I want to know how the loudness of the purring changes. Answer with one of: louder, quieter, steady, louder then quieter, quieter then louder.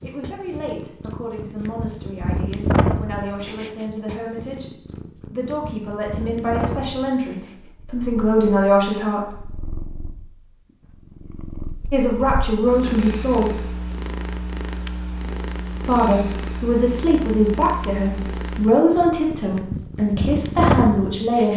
quieter then louder.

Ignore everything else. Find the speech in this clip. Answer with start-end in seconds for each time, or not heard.
0.0-9.6, 11.9-13.7, 15.8-21.5.